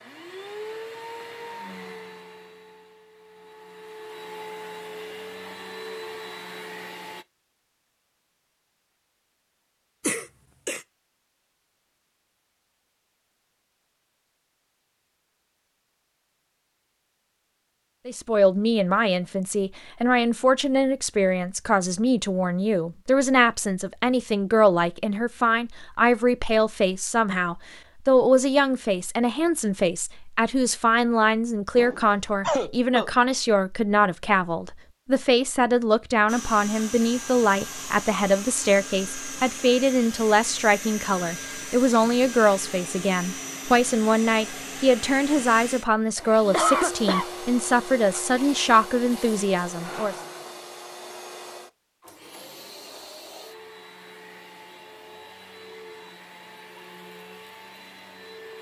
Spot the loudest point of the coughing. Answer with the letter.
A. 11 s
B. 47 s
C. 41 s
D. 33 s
B.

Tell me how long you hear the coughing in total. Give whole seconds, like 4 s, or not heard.
3 s.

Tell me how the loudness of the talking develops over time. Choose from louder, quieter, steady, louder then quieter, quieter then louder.
steady.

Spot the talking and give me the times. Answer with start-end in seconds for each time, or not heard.
18.1-50.1.